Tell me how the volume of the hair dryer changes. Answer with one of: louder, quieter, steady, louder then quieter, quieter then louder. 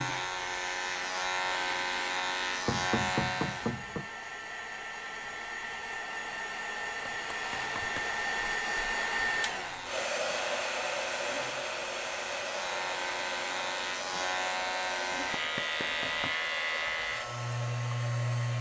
louder then quieter.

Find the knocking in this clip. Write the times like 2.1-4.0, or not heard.
2.6-4.0, 7.0-8.1, 15.2-16.4.